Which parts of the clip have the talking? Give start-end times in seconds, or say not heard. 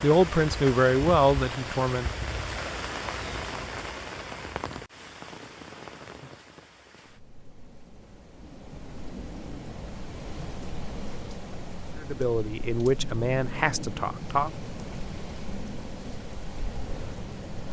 0.0-2.2, 12.0-14.5.